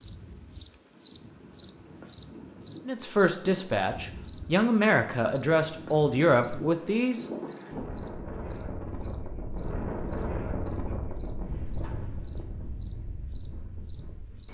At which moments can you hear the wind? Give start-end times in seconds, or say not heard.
0.0-14.5.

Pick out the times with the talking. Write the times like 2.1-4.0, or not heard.
2.9-7.2.